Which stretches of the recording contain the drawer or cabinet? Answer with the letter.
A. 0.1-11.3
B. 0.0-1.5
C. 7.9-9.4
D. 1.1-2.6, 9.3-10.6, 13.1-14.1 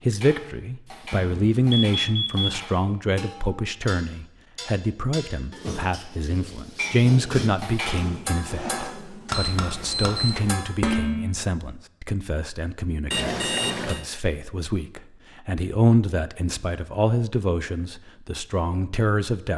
C.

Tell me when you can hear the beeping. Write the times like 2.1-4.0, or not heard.
1.1-2.6, 9.3-10.6, 13.1-14.1.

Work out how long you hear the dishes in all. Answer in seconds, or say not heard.
11 s.